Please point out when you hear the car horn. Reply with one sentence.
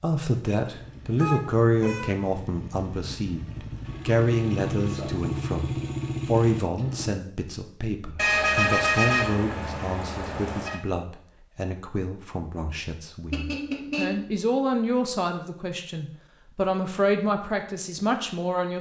You can hear the car horn from 1.1 to 2.1 s, from 8.2 to 10.8 s and from 13.3 to 14.3 s.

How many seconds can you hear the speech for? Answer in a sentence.
The speech can be heard for 19 seconds in total.